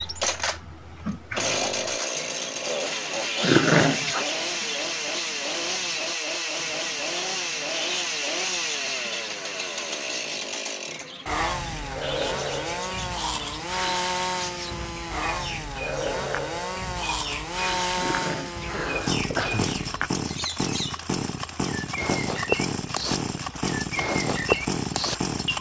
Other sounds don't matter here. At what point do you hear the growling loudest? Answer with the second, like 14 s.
4 s.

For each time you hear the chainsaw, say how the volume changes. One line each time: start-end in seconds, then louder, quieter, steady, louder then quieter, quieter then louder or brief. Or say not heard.
0.0-25.5 steady.